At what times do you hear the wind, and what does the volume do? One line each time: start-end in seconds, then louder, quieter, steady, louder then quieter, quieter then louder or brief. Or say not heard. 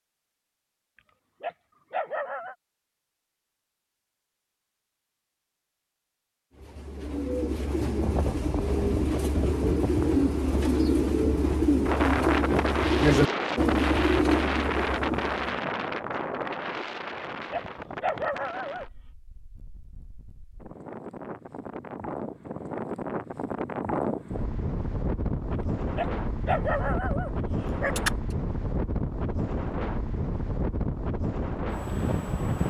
8.0-32.6 quieter then louder.